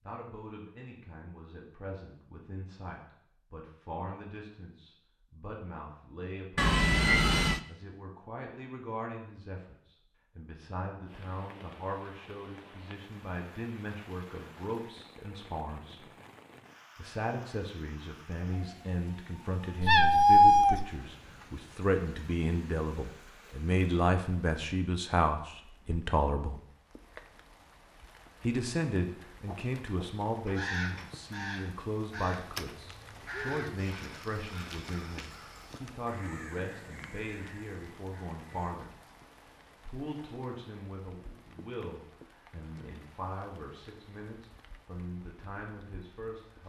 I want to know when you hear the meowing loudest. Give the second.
20 s.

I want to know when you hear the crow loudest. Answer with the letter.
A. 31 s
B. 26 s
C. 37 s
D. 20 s
A.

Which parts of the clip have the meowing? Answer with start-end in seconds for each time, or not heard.
6.5-7.6, 19.8-20.9, 32.5-33.6.